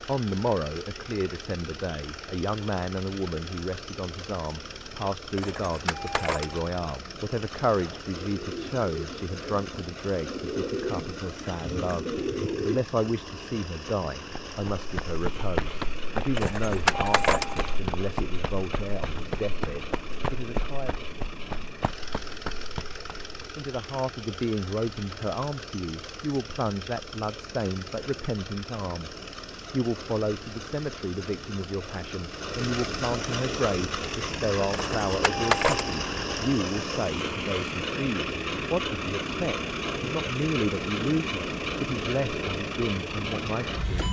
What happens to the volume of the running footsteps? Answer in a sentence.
The loudness of the running footsteps goes down.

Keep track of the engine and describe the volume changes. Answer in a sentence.
The loudness of the engine goes up.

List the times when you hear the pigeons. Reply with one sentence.
You can hear the pigeons from 7.7 to 12.8 s.